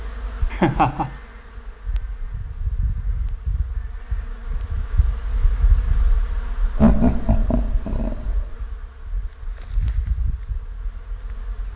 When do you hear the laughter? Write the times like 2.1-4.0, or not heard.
0.5-1.1, 6.8-8.6.